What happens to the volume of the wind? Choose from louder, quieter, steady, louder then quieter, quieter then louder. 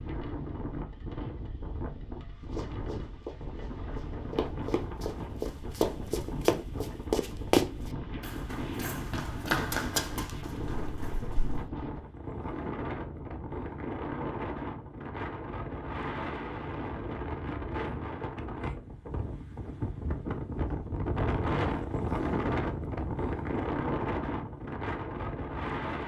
louder.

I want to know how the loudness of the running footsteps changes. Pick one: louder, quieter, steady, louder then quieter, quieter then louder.
louder then quieter.